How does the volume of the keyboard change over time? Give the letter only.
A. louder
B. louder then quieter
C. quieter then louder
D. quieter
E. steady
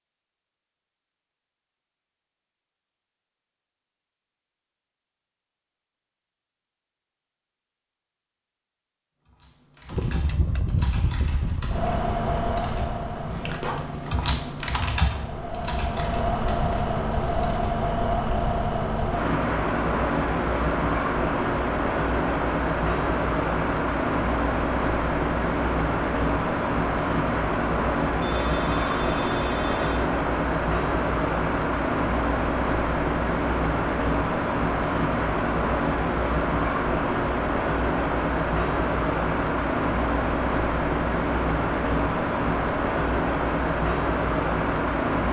B.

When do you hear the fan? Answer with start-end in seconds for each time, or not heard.
9.9-45.2.